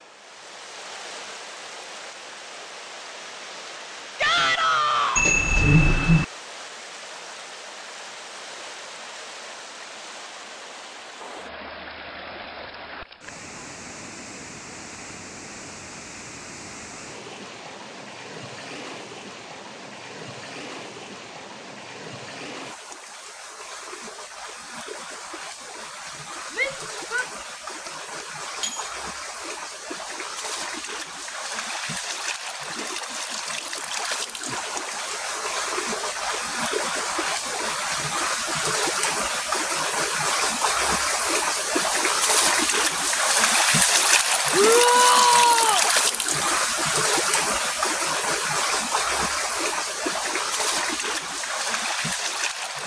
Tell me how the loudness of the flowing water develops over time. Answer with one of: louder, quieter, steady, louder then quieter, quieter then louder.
louder.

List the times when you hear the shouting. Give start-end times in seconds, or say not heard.
4.2-5.3, 26.5-27.2, 44.5-45.9.